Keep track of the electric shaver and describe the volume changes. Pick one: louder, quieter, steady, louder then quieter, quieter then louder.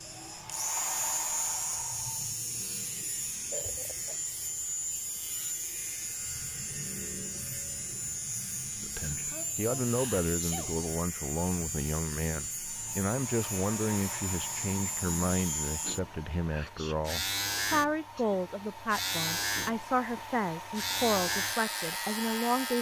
steady.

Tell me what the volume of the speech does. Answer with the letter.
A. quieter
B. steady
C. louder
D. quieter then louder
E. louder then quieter
B.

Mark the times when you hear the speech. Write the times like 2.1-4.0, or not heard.
8.8-22.7.